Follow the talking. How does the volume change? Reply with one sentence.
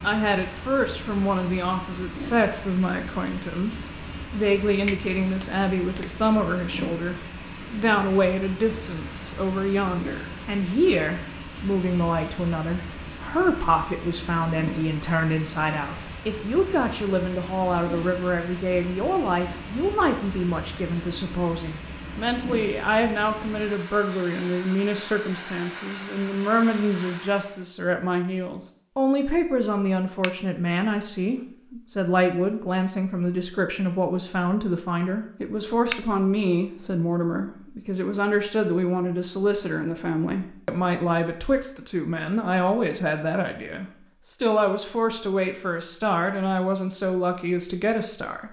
The loudness of the talking stays about the same.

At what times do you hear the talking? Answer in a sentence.
You can hear the talking from 0.0 to 48.4 s.